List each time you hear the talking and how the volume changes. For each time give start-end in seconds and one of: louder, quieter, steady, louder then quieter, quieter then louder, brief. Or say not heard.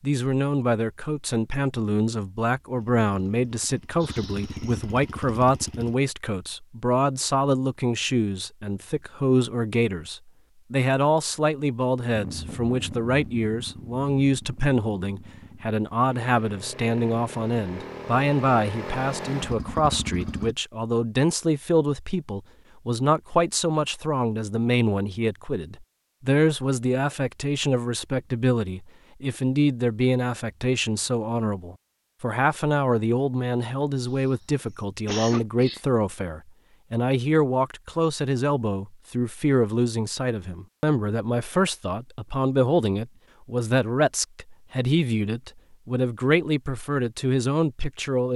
0.0-48.3 steady.